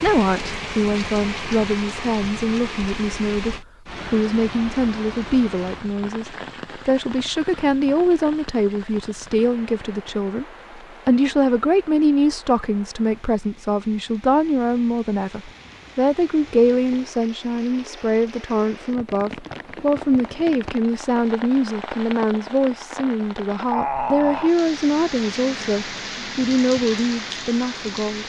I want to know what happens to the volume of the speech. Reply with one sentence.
The loudness of the speech stays about the same.